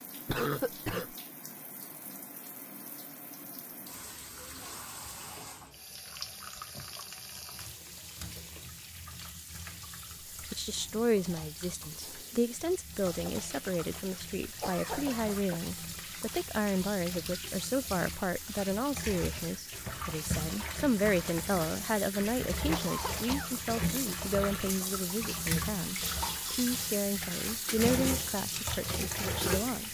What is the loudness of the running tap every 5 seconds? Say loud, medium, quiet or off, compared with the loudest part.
quiet, medium, medium, medium, loud, loud.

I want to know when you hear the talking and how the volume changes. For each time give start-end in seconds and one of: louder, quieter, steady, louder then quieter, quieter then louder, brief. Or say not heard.
10.5-29.8 steady.